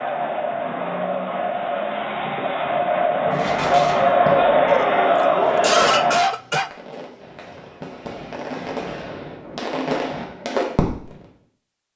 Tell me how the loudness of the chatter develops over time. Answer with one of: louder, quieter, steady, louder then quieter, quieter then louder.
louder.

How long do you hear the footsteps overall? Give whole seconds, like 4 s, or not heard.
not heard.